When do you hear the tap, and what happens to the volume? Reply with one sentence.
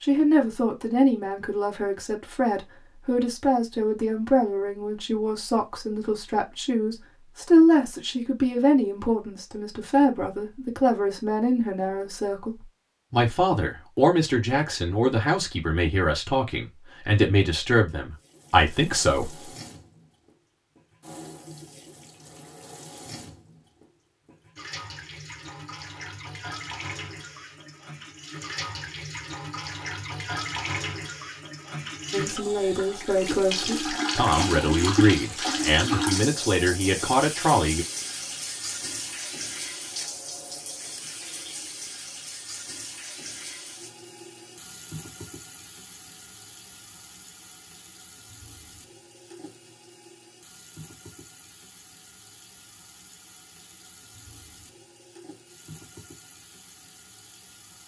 The tap can be heard from 18.1 to 57.8 s, getting louder then quieter.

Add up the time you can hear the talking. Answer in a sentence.
The talking can be heard for 25 seconds in total.